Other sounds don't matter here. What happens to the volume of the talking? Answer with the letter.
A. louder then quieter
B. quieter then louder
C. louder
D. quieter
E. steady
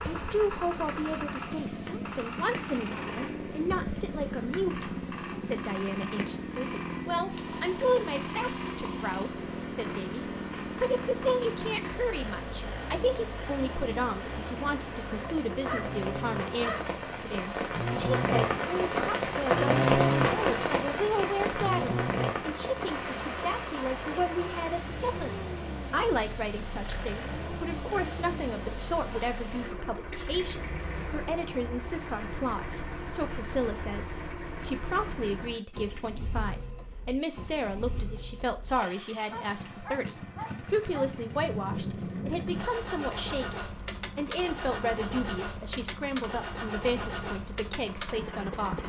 E.